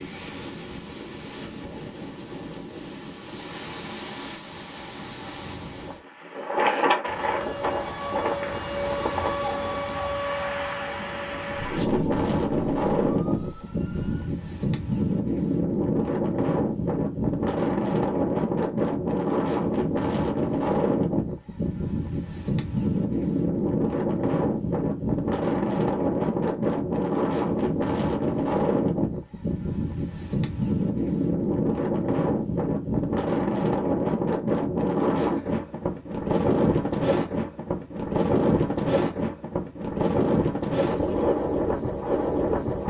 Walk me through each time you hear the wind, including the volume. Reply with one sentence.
You can hear the wind from 0.0 to 42.8 s, getting louder.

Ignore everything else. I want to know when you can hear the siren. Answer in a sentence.
The siren can be heard from 7.0 to 14.3 s.